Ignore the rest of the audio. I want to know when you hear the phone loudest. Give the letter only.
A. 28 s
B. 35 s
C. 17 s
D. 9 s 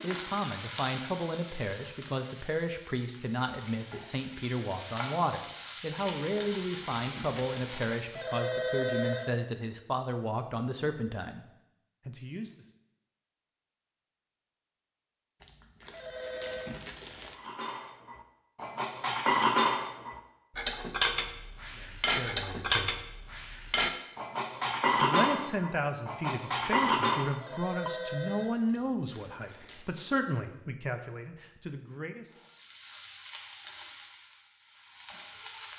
D.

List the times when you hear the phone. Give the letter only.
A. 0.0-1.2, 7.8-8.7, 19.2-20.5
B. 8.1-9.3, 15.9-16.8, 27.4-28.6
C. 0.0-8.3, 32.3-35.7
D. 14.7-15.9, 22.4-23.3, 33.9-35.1
B.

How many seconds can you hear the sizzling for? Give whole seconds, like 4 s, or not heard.
12 s.